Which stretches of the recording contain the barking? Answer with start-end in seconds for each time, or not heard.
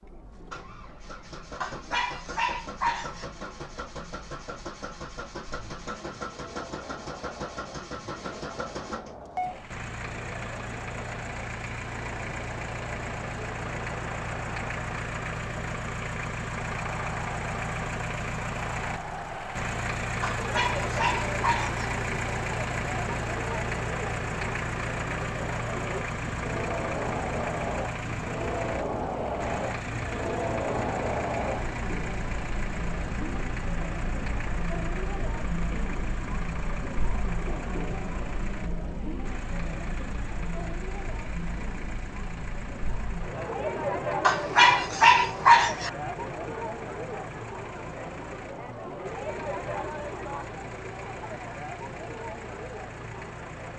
1.6-3.2, 20.2-21.9, 44.2-45.9.